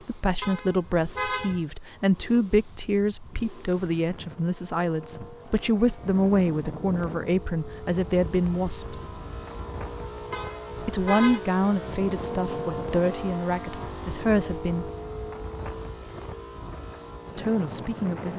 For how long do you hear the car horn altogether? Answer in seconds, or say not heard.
2 s.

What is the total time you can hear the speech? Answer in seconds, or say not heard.
14 s.